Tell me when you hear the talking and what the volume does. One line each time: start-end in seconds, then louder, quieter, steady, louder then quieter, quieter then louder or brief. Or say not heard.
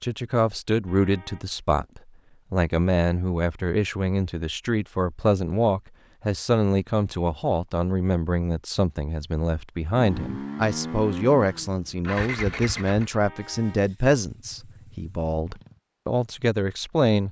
0.0-17.2 steady.